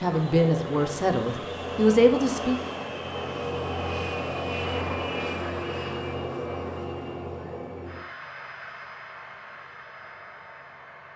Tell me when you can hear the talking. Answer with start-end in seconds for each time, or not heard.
0.0-2.6.